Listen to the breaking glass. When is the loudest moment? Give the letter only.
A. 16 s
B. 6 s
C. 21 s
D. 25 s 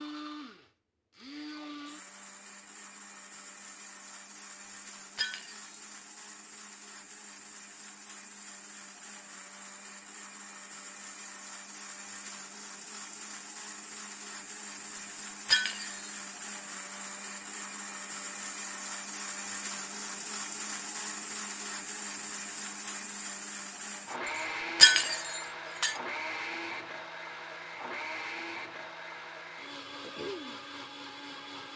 D.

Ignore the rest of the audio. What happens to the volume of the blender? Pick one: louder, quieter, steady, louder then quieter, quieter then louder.
louder.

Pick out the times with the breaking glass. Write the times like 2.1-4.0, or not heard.
5.2-5.8, 15.4-16.1, 24.8-25.9.